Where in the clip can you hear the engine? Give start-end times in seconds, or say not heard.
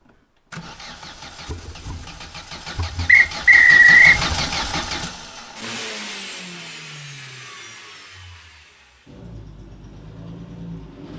0.0-11.1.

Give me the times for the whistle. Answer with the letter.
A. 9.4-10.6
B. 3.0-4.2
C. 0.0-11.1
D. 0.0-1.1
B.